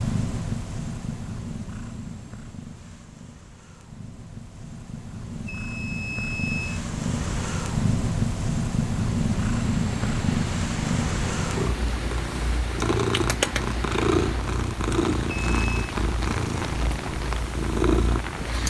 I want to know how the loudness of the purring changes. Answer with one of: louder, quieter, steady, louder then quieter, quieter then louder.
louder.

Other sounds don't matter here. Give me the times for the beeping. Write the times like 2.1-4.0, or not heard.
5.5-6.8, 15.4-15.8.